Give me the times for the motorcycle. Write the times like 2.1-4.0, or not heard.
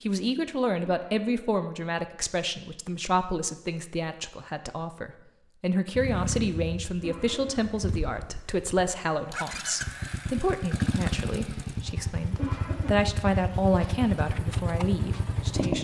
5.9-15.7.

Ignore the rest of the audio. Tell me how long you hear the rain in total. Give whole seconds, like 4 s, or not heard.
not heard.